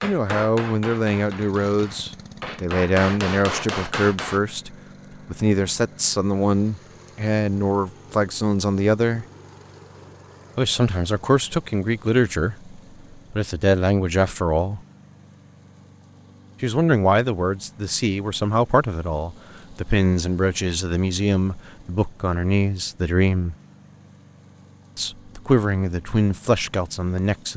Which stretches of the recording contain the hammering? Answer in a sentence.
The hammering can be heard from 0.0 to 4.4 s.